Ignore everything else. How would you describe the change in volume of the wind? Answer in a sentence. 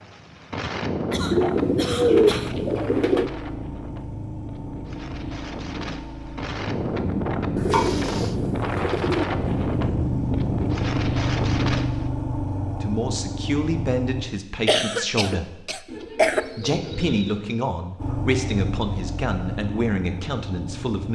The loudness of the wind goes down, then up.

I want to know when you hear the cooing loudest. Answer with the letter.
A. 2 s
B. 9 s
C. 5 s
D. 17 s
A.